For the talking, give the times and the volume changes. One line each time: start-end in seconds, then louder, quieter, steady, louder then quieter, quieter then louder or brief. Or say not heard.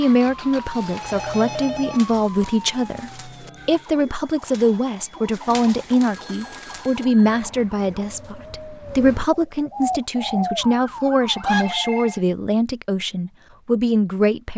0.0-14.5 steady.